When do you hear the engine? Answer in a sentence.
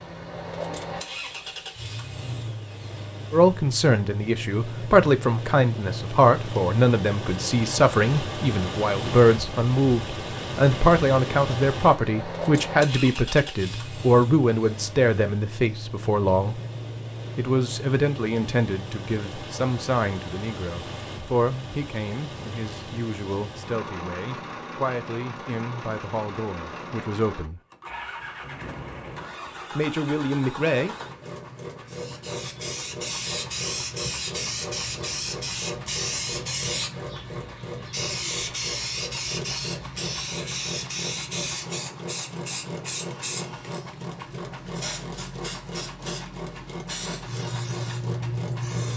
The engine can be heard from 0.0 to 48.9 s.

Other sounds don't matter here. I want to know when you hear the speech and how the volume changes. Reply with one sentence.
The speech can be heard from 3.3 to 16.6 s, at a steady volume; from 17.4 to 27.6 s, getting quieter; and briefly from 29.8 to 30.9 s.